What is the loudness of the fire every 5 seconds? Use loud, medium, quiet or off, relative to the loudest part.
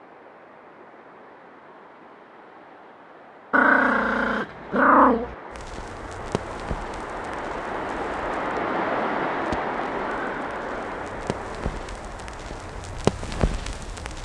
off, medium, loud.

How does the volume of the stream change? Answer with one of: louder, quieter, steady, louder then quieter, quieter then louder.
louder then quieter.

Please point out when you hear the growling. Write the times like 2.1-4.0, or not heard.
3.5-5.3, 10.1-10.8.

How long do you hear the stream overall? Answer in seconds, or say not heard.
14 s.